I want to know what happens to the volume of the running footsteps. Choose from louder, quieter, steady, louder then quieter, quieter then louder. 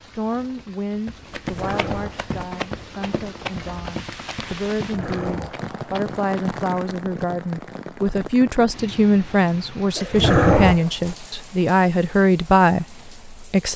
quieter.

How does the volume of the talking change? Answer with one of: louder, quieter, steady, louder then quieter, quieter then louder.
louder.